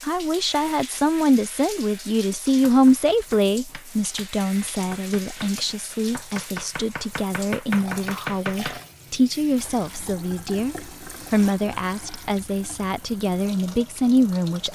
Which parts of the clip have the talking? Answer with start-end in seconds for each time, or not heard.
0.0-14.7.